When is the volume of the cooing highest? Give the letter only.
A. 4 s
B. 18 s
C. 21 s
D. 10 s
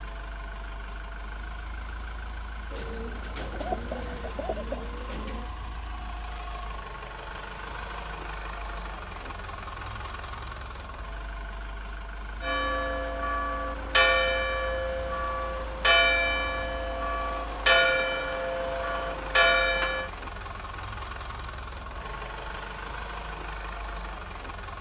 A.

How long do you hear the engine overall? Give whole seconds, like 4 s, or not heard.
25 s.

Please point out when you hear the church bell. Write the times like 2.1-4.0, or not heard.
12.4-20.1.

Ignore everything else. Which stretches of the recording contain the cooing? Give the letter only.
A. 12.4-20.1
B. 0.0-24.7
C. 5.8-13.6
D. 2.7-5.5
D.